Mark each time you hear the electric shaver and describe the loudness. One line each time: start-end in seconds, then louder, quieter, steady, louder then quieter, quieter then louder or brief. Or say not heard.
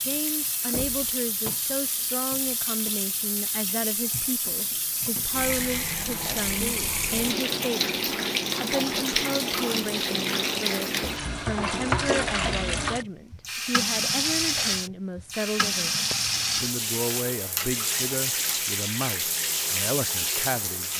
not heard.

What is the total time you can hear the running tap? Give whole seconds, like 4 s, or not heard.
21 s.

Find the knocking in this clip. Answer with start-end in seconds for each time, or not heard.
0.7-1.1.